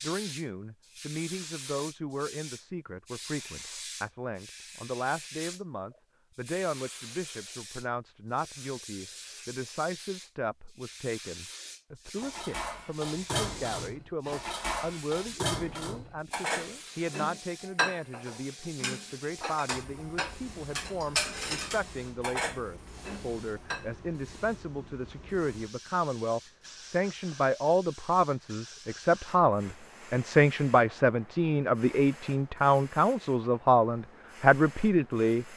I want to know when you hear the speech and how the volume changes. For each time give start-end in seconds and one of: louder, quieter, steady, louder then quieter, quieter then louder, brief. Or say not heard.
0.0-35.5 louder.